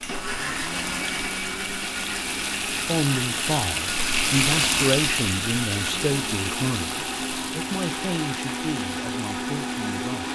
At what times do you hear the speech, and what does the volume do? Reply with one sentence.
You can hear the speech from 2.7 to 10.3 s, getting quieter.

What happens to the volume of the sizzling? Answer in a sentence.
The loudness of the sizzling goes up, then down.